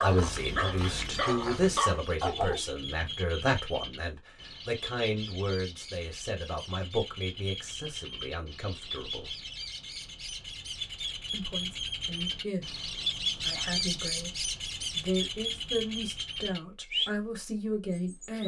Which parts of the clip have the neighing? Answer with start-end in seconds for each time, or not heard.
not heard.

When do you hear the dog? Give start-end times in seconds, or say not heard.
0.0-3.2.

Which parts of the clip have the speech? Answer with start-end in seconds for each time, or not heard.
0.0-9.3, 11.3-18.4.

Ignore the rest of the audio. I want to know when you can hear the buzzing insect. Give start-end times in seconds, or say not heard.
not heard.